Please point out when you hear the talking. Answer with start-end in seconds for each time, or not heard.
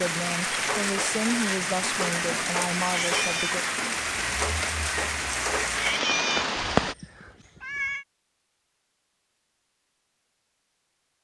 0.0-3.6.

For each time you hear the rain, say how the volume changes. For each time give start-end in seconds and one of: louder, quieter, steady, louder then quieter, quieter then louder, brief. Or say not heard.
0.0-7.0 steady.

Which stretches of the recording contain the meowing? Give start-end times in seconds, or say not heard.
2.8-3.6, 5.7-8.1.